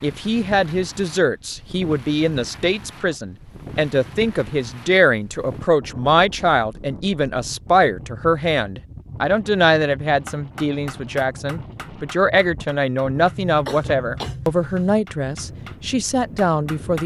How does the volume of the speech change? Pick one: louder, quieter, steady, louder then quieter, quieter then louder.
steady.